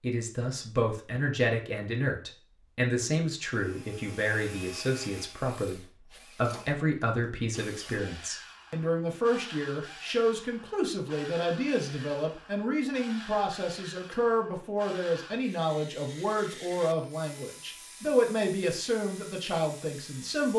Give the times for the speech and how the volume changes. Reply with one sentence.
You can hear the speech from 0.0 to 20.5 s, at a steady volume.